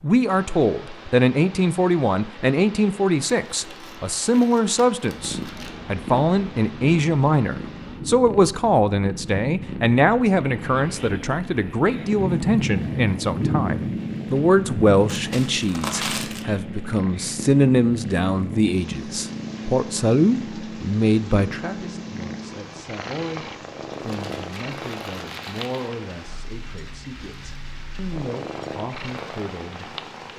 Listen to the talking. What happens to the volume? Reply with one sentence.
The volume of the talking goes down.